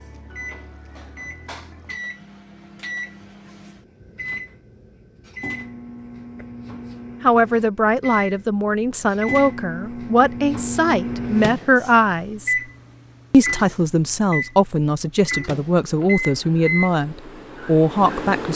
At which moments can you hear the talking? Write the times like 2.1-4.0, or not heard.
7.2-12.6, 13.3-18.5.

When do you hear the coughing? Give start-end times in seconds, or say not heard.
not heard.